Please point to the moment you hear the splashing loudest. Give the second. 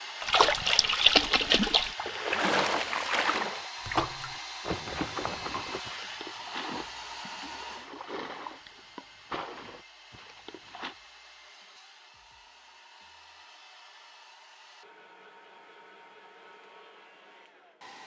1 s.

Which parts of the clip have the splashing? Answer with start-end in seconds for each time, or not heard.
0.2-10.9.